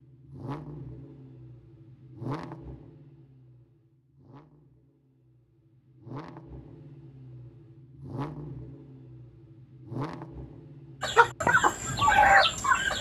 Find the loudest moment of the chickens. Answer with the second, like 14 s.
12 s.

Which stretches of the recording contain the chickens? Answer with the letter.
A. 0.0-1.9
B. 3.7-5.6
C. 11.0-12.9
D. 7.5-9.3
C.